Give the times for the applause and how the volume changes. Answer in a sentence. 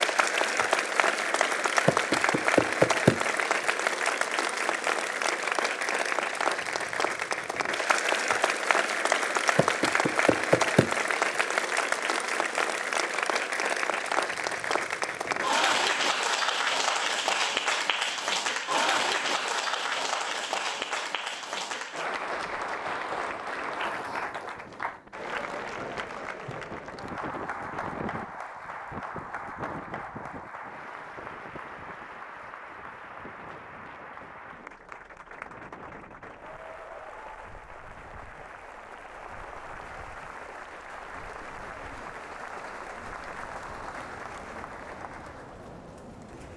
You can hear the applause from 0.0 to 46.5 s, getting quieter.